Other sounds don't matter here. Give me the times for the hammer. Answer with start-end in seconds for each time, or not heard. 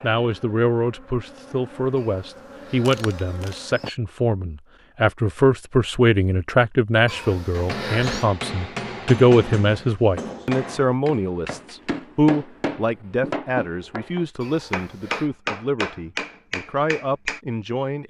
7.5-17.4.